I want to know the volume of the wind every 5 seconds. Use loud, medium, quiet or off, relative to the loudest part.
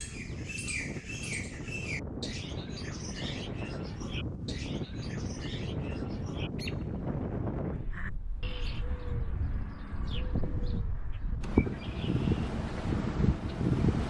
medium, medium, loud.